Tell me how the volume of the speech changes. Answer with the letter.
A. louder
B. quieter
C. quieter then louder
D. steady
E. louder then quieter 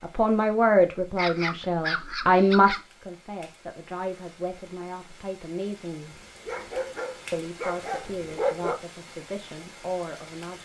B.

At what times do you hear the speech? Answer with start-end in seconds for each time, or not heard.
0.0-6.2, 7.3-10.5.